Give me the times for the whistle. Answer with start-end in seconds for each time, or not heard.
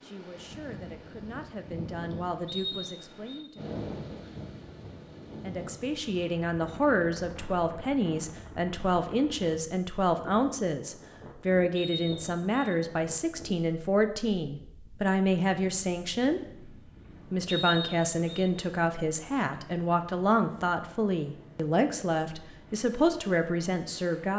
2.5-3.5, 11.8-12.7, 17.4-18.4.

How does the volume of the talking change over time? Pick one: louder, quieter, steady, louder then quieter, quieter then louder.
louder.